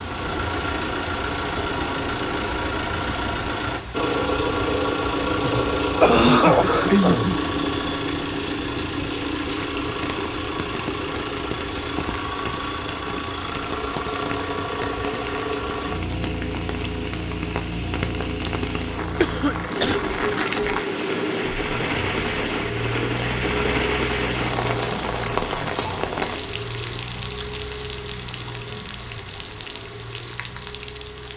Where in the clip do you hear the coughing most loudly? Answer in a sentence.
The loudest moment of the coughing is at 6 seconds.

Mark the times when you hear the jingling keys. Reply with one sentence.
The jingling keys can't be heard in this clip.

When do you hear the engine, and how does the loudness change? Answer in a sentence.
You can hear the engine from 0.0 to 31.3 s, getting quieter.